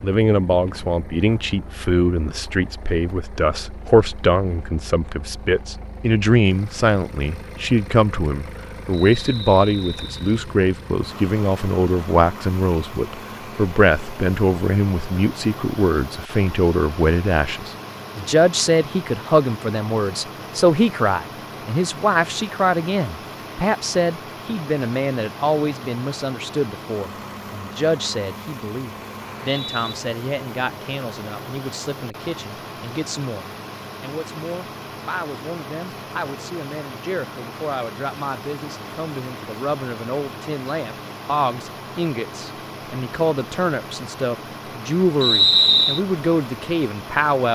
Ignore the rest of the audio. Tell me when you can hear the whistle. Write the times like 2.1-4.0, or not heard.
8.9-10.4, 29.2-29.9, 45.2-46.0.